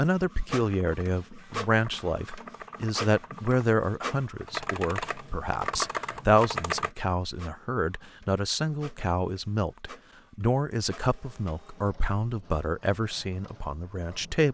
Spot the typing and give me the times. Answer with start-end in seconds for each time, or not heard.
0.7-6.9.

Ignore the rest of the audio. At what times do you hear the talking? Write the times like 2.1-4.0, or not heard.
0.0-14.4.